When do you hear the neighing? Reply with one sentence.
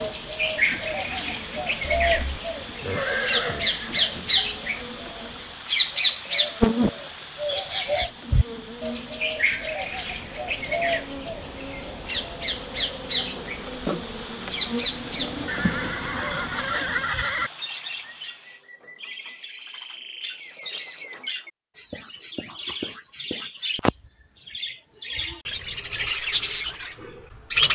You can hear the neighing from 1.8 to 4.1 s and from 15.4 to 17.5 s.